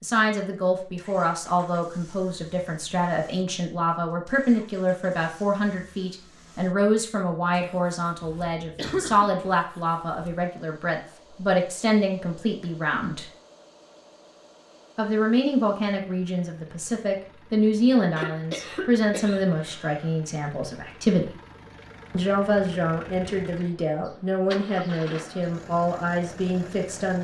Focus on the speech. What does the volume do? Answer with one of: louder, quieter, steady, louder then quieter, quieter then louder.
steady.